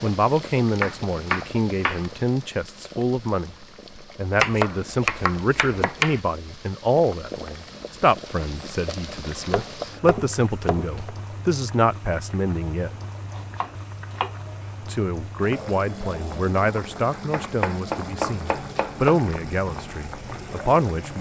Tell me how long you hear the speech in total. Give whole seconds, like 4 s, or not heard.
19 s.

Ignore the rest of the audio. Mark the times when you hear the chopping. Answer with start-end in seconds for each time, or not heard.
0.8-2.0, 4.3-6.2, 9.3-11.1, 13.3-14.3, 17.1-19.4.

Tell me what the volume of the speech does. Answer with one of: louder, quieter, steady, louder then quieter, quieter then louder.
steady.